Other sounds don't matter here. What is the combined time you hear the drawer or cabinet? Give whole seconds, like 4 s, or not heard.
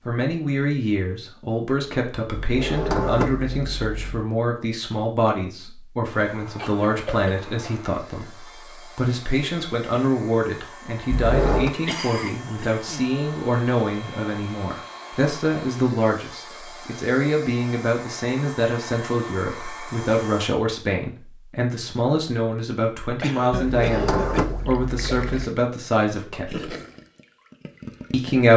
4 s.